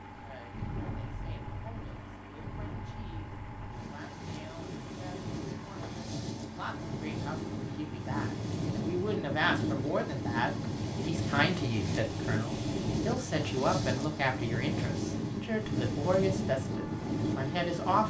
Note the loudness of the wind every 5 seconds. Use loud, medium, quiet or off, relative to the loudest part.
medium, loud, loud, loud.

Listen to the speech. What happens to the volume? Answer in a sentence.
The volume of the speech goes up.